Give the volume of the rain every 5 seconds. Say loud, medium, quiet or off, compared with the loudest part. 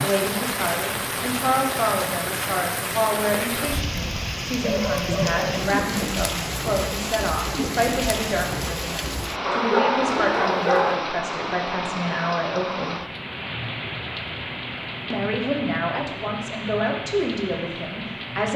loud, loud, loud, medium.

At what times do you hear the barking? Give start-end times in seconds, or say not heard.
4.6-5.6, 9.4-11.0.